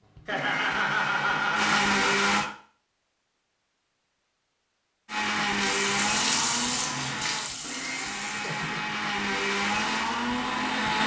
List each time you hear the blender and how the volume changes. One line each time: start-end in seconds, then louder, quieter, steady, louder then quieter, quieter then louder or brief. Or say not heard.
0.1-2.5 brief
5.0-11.0 quieter then louder.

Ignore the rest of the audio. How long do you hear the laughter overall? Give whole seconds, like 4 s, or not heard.
3 s.